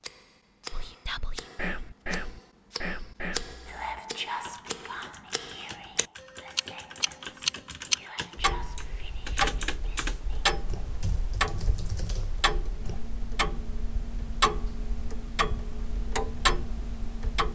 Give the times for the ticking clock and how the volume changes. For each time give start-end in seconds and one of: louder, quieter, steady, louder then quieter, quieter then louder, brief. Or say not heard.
0.0-17.5 louder.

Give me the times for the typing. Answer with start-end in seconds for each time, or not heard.
3.6-13.0.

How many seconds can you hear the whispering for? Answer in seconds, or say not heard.
10 s.